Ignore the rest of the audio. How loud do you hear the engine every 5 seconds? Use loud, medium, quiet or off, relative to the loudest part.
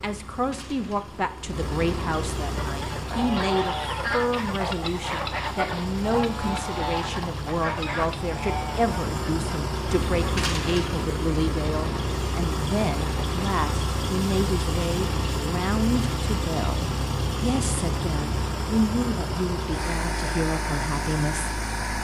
medium, medium, loud, loud, loud.